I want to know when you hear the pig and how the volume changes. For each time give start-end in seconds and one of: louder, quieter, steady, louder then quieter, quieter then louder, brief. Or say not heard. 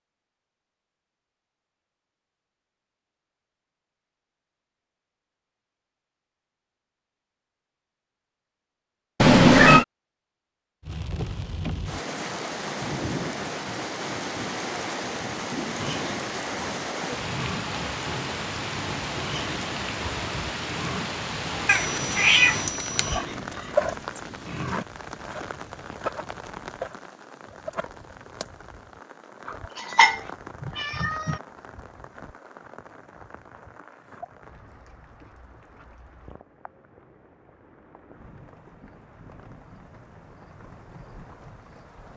15.8-24.9 steady.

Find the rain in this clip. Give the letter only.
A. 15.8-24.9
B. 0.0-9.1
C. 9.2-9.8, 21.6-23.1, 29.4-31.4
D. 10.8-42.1
D.